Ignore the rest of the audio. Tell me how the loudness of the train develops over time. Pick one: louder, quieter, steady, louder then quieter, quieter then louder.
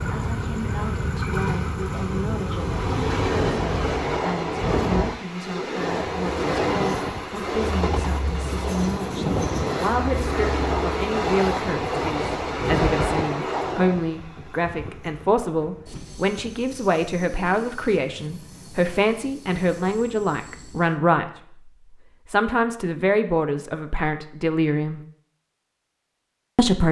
quieter.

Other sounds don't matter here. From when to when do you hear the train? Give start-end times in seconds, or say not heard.
0.0-21.0.